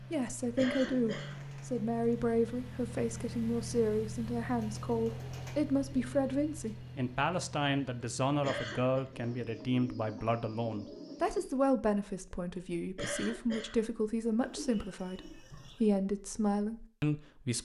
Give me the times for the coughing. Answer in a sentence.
The coughing can be heard from 0.6 to 1.4 s, from 8.4 to 9.0 s and from 12.9 to 13.8 s.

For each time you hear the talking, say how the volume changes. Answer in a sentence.
The talking can be heard from 0.0 to 17.6 s, at a steady volume.